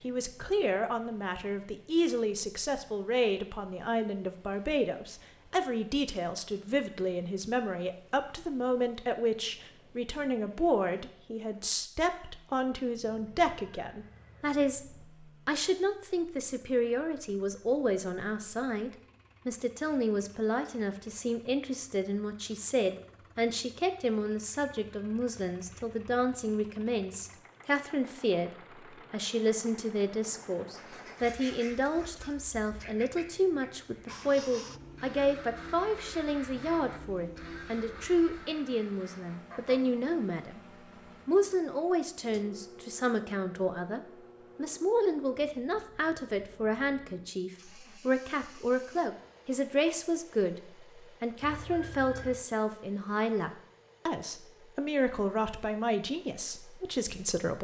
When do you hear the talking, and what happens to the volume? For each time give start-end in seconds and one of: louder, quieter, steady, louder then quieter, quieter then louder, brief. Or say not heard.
0.0-40.6 steady
41.2-57.5 steady.